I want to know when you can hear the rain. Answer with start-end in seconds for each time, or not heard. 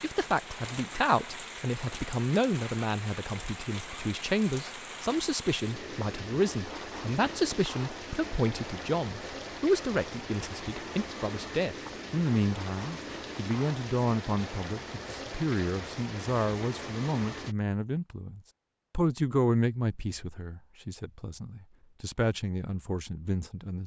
0.0-17.6.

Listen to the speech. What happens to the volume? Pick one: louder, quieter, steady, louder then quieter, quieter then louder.
steady.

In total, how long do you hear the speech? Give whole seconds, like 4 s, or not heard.
24 s.